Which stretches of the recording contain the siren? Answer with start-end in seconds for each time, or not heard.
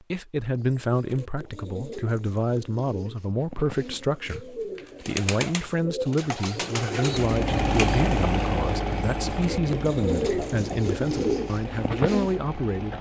not heard.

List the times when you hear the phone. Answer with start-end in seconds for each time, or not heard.
not heard.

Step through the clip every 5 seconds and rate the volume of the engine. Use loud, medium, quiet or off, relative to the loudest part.
off, loud, medium.